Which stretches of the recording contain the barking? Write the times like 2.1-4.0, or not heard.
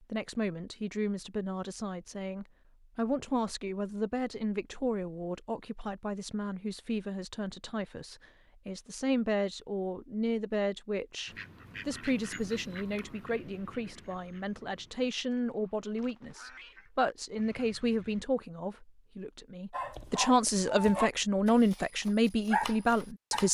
19.7-23.4.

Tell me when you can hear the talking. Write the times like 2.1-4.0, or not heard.
0.0-23.4.